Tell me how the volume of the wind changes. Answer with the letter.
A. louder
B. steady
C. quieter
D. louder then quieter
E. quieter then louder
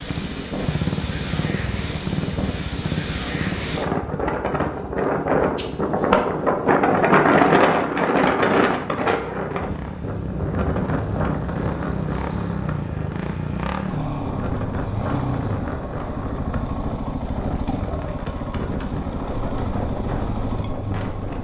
D.